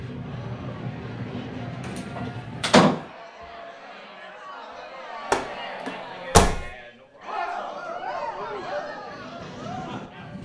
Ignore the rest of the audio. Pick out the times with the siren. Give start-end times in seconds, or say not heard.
not heard.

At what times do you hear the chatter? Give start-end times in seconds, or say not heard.
0.0-10.3.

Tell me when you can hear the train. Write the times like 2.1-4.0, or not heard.
0.0-2.9, 8.0-10.3.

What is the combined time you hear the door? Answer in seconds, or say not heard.
2 s.